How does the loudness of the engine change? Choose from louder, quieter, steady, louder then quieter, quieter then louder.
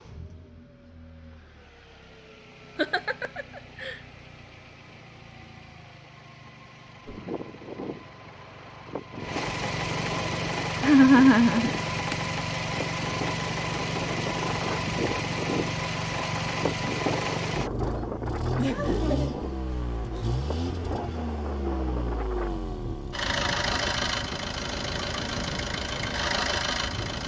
louder.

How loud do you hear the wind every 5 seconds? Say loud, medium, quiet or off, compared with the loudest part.
off, medium, loud, loud, medium, medium.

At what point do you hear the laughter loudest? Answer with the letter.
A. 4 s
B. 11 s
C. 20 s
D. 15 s
B.